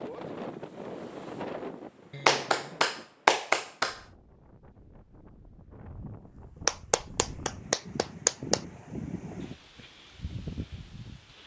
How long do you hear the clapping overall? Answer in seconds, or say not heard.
4 s.